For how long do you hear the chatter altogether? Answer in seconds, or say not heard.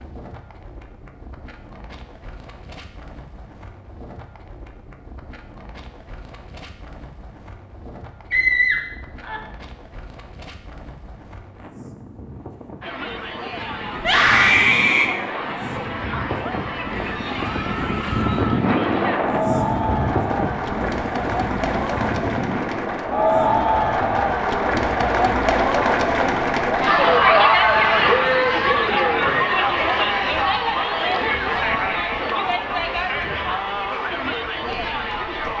23 s.